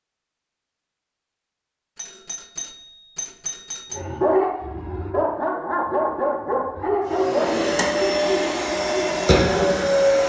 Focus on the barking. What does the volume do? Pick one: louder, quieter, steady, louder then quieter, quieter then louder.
quieter.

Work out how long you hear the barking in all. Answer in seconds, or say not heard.
6 s.